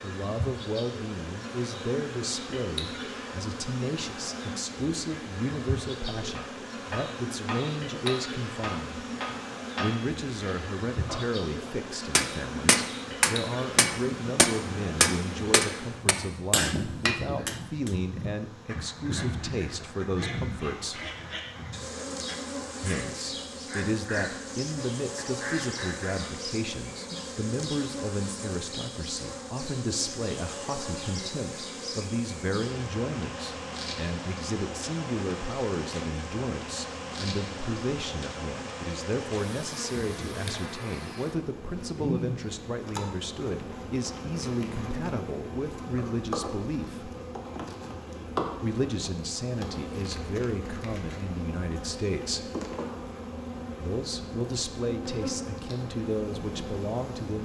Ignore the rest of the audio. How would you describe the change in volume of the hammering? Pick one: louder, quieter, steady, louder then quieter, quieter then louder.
louder.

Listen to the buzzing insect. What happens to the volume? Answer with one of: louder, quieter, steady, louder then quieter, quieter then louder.
steady.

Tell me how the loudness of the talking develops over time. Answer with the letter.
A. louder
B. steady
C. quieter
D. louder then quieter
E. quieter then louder
B.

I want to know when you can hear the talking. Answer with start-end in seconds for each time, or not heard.
0.0-9.1, 9.8-21.1, 22.8-47.1, 48.6-52.5, 53.8-57.4.